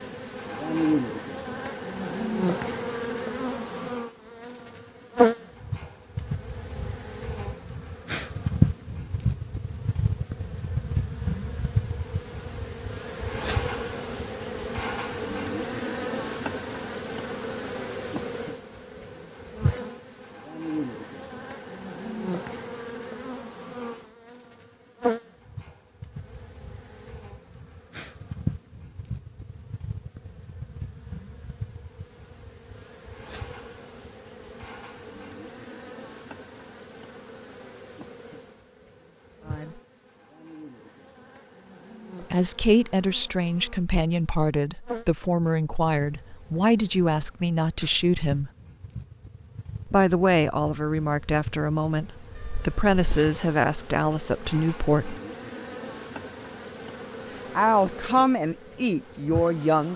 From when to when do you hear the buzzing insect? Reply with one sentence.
The buzzing insect can be heard from 0.0 to 59.9 s.